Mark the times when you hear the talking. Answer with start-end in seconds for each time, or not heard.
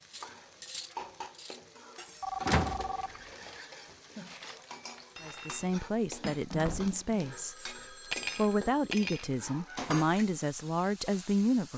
5.2-7.5, 8.3-11.7.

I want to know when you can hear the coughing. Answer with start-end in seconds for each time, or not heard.
not heard.